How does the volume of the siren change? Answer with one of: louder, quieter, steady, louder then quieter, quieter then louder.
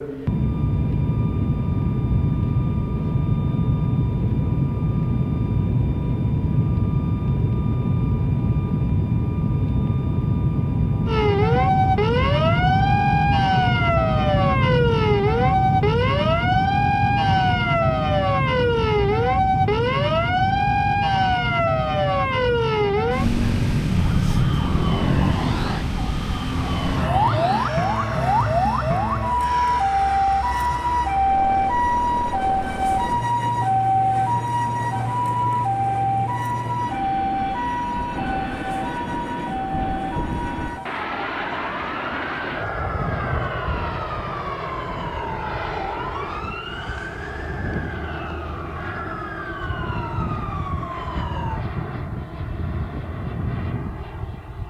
quieter.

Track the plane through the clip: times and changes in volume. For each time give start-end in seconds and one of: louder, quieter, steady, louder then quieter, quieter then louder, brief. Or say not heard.
0.0-54.6 quieter.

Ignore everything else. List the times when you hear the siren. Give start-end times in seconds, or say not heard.
11.1-51.6.